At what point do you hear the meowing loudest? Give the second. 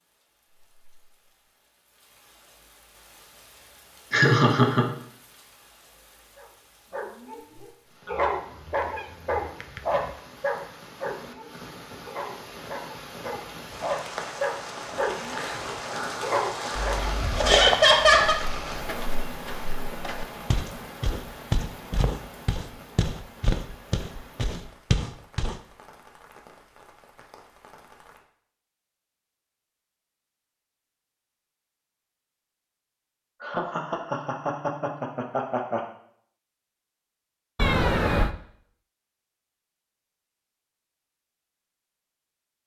38 s.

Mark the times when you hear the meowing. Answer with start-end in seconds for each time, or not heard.
8.1-10.1, 16.8-17.6, 37.5-38.4.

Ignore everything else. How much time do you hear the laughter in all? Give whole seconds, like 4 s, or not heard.
4 s.